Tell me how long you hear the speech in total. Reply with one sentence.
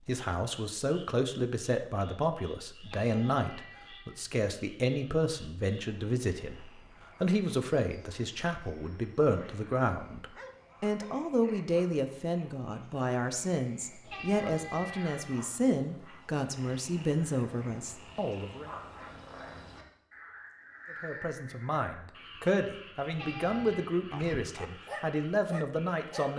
You can hear the speech for 24 seconds altogether.